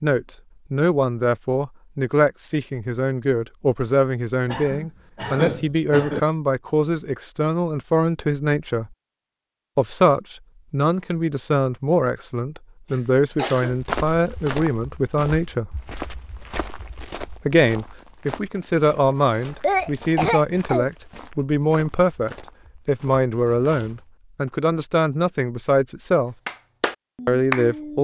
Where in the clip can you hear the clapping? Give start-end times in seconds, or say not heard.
26.4-27.9.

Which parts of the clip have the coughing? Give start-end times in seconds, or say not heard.
4.5-6.2, 12.9-13.8, 19.1-20.9.